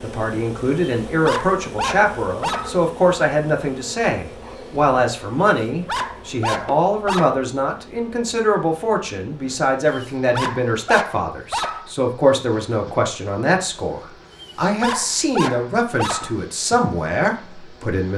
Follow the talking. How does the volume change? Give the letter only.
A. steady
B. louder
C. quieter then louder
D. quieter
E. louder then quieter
A.